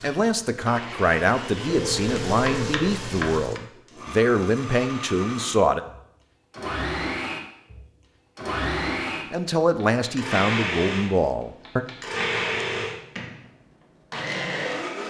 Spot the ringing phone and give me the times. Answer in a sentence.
You can hear the ringing phone from 1.6 to 2.9 s and from 12.1 to 13.1 s.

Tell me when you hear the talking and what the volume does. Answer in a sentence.
You can hear the talking from 0.0 to 5.8 s, at a steady volume; and briefly from 9.3 to 11.8 s.